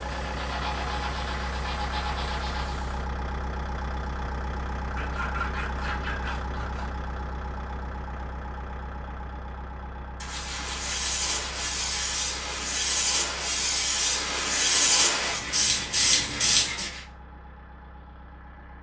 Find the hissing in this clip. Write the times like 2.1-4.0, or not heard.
0.0-3.1, 10.3-16.9.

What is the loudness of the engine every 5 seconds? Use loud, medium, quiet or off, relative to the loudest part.
loud, loud, medium, quiet.